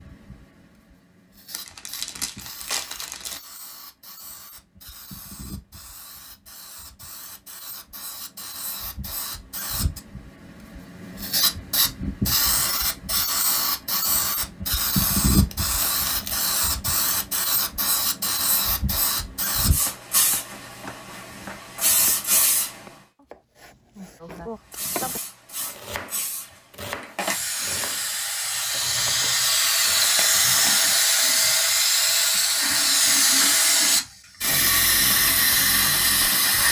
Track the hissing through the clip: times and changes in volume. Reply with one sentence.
The hissing can be heard from 0.0 to 22.9 s, getting louder; and from 24.7 to 36.6 s, getting louder.